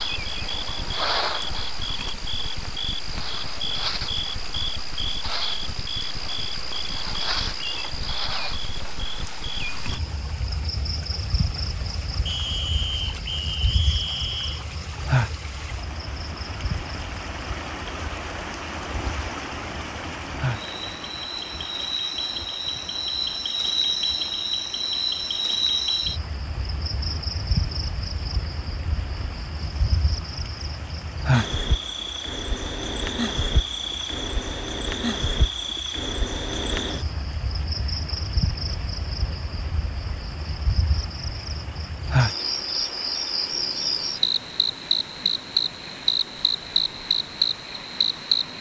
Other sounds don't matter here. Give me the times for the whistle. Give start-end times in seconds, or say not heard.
12.2-14.7.